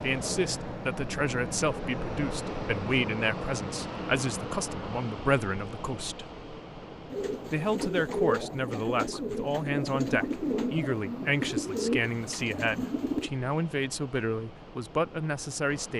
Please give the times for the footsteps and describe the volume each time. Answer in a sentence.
The footsteps can't be heard in this clip.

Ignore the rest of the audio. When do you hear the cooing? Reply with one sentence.
The cooing can be heard from 7.1 to 13.3 s.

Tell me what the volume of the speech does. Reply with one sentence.
The volume of the speech stays about the same.